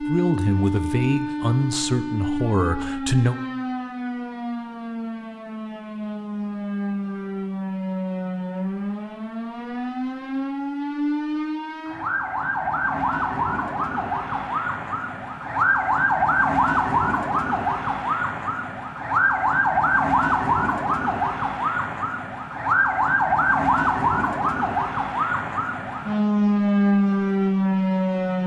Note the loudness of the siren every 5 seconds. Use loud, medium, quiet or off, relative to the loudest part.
medium, medium, medium, loud, loud, loud.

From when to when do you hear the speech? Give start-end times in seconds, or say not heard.
0.0-3.4.